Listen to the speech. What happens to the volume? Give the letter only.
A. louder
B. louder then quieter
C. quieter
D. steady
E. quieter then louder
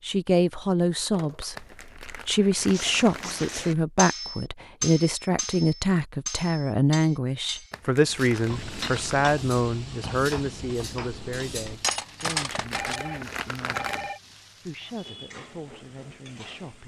C.